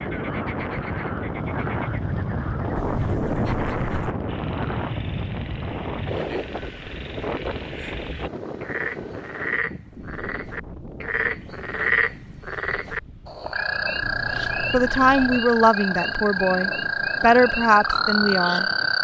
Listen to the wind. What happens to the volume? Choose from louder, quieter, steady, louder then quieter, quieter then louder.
quieter.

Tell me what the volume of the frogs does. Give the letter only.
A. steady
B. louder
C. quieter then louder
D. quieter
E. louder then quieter
B.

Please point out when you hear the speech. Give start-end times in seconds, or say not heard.
14.7-18.6.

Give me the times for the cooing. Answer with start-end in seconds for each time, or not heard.
not heard.